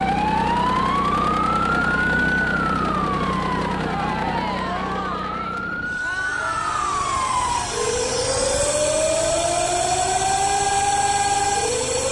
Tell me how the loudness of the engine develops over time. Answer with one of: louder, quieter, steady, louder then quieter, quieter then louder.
quieter then louder.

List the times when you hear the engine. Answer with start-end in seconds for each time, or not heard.
0.0-12.0.